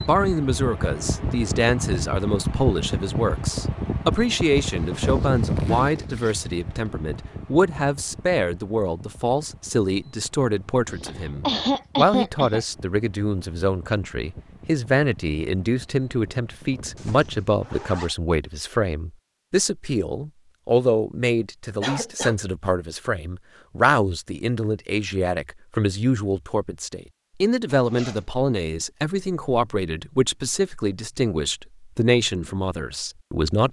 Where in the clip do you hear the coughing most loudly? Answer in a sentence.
The loudest moment of the coughing is at 12 seconds.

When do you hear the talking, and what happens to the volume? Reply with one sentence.
The talking can be heard from 0.1 to 33.6 s, at a steady volume.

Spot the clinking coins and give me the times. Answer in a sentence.
The clinking coins can't be heard in this clip.